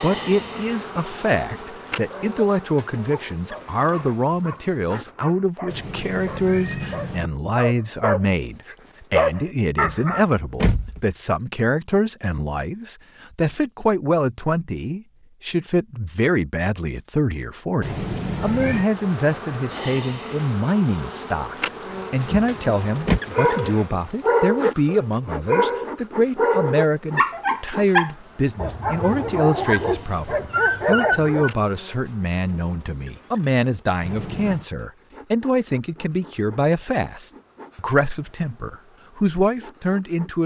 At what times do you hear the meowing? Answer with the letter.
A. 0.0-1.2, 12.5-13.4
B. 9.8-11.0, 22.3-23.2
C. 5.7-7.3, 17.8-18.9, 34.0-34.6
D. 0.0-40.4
C.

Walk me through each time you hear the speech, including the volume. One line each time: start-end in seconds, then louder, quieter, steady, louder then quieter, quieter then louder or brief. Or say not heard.
0.0-40.4 steady.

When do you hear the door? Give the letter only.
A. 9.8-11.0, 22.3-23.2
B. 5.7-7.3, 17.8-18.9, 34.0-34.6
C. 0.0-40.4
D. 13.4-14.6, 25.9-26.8
A.